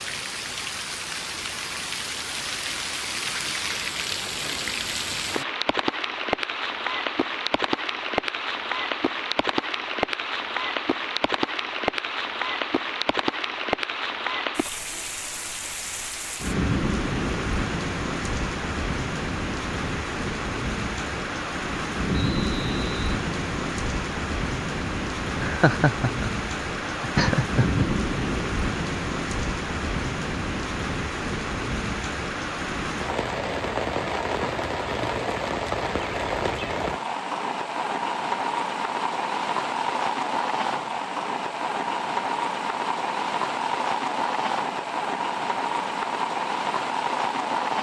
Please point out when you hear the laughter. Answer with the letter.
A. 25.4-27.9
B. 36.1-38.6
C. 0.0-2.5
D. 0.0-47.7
A.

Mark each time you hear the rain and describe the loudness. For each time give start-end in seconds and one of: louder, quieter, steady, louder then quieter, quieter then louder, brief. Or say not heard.
0.0-47.7 steady.